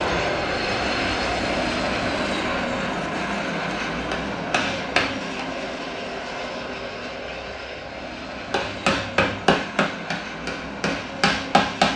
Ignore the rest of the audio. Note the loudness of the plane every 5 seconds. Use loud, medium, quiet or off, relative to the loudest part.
loud, medium, medium.